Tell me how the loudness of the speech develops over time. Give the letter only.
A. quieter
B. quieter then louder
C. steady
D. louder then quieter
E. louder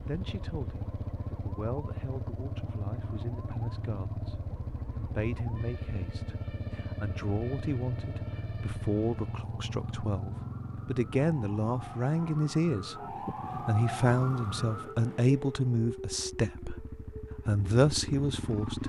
E.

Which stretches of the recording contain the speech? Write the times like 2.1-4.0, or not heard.
0.0-12.9, 13.7-18.8.